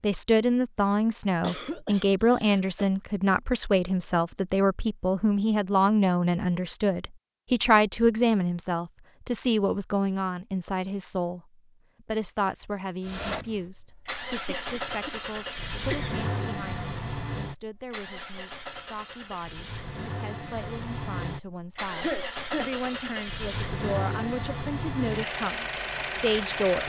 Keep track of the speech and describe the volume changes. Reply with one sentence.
The loudness of the speech goes down, then up.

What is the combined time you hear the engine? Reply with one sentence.
The engine can be heard for 14 seconds in total.